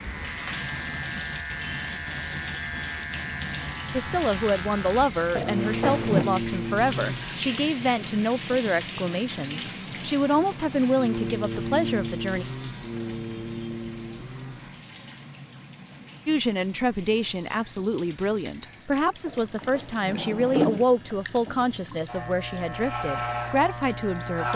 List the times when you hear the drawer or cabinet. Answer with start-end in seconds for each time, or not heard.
5.3-6.2, 19.2-20.9.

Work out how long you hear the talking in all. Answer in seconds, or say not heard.
17 s.